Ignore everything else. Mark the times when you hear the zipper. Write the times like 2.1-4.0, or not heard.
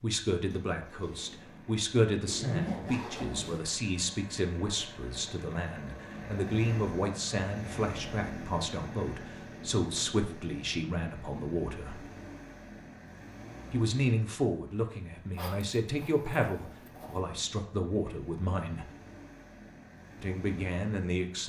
2.2-3.6, 15.3-17.2.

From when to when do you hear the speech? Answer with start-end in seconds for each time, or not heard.
0.0-12.1, 13.7-18.9, 20.2-21.4.